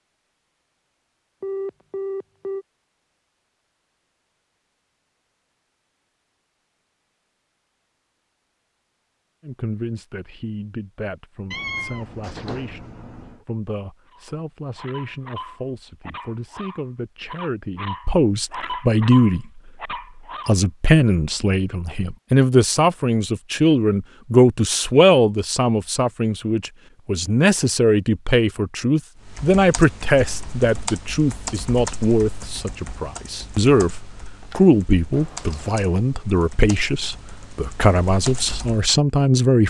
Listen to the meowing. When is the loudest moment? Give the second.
12 s.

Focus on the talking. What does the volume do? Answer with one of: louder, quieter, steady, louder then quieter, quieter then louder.
louder.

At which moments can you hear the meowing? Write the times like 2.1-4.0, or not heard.
11.5-13.4, 35.1-35.9.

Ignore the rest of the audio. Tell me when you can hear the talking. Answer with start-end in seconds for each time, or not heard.
9.4-39.6.